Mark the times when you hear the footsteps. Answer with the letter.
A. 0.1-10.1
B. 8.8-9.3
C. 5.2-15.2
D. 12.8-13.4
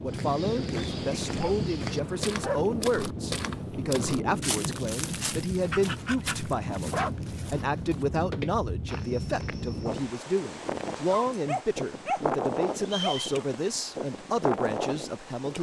A.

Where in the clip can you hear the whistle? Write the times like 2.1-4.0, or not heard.
12.8-13.4.